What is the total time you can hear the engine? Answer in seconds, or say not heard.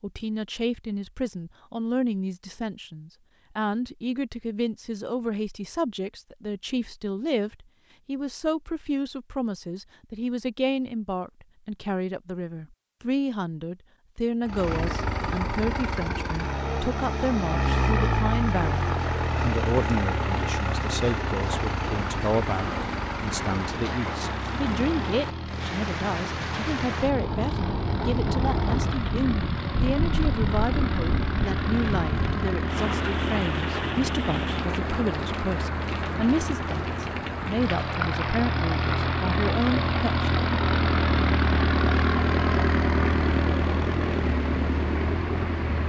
31 s.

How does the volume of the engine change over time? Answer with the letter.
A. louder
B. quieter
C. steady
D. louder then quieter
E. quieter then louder
E.